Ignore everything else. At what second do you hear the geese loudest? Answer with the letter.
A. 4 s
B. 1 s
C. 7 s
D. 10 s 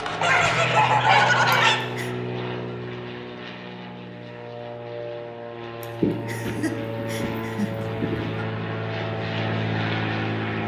B.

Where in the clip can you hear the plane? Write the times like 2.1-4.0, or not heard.
0.0-10.6.